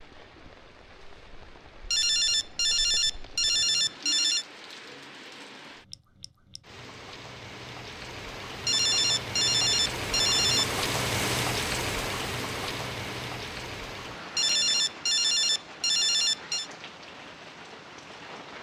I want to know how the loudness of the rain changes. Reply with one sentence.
The loudness of the rain goes up, then down.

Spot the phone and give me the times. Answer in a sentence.
The phone can be heard from 1.9 to 4.5 s, from 8.7 to 10.7 s and from 14.3 to 16.7 s.